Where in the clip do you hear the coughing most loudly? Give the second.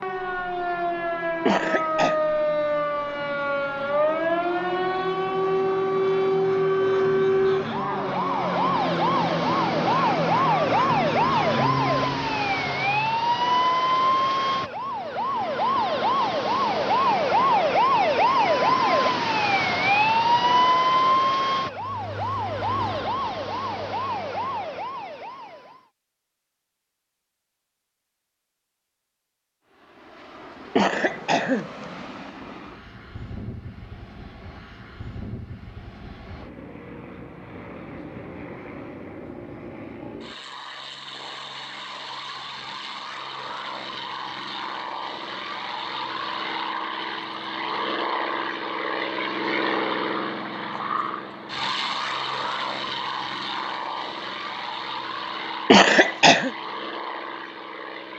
56 s.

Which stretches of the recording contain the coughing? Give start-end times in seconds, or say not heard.
1.4-2.2, 30.8-31.6, 55.7-56.5.